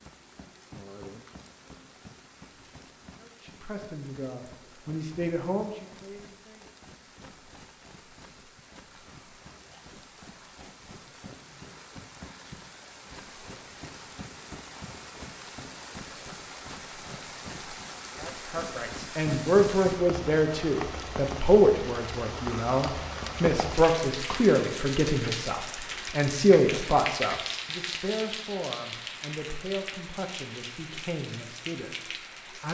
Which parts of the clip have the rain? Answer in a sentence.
The rain can be heard from 0.0 to 32.6 s.